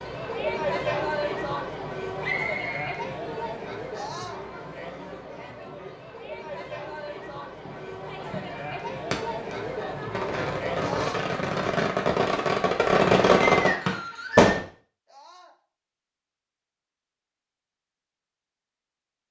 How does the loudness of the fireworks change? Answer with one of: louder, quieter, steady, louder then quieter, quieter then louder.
louder.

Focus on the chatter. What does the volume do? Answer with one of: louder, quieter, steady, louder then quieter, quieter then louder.
quieter then louder.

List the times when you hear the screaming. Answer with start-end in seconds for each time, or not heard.
3.9-4.5, 10.8-11.3, 15.1-15.6.